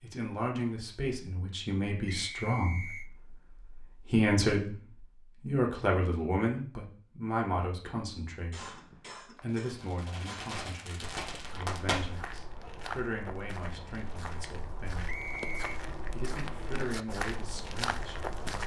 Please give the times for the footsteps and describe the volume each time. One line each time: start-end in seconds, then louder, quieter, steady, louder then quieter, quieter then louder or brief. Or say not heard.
10.5-18.6 louder.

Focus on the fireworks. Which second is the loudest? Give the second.
12 s.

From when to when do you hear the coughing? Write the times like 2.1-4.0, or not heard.
8.5-10.5.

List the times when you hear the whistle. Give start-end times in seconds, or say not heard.
2.1-3.1, 8.7-9.4, 15.1-15.8.